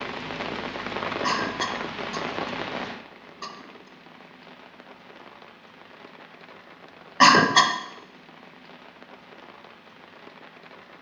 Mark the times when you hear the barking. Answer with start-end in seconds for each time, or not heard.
not heard.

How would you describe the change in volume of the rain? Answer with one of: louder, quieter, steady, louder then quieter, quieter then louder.
quieter.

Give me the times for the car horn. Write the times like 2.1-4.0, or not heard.
not heard.